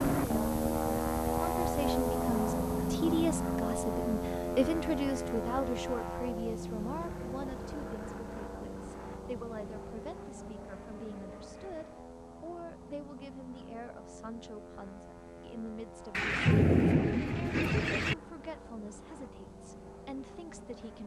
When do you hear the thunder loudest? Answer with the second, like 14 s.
17 s.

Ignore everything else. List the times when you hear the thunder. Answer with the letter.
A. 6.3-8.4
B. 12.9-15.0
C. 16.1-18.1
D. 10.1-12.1
C.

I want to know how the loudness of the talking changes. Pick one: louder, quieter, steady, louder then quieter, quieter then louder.
quieter.